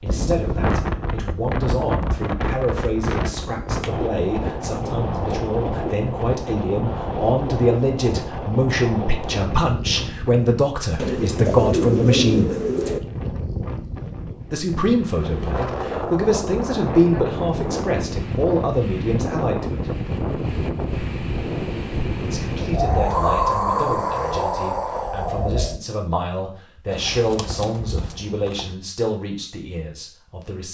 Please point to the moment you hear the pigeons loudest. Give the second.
12 s.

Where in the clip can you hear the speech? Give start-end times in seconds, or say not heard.
0.0-12.6, 14.5-19.9, 22.2-30.7.